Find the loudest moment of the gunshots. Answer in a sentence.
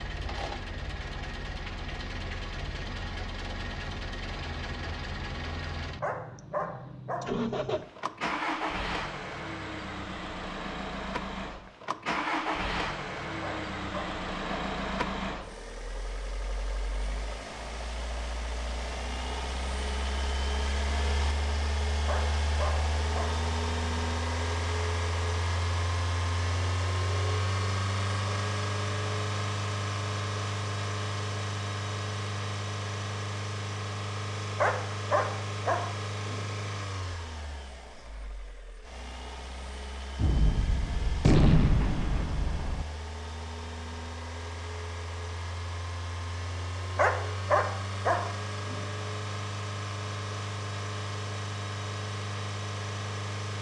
The loudest moment of the gunshots is at 41 seconds.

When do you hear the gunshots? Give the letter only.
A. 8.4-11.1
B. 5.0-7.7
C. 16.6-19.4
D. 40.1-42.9
D.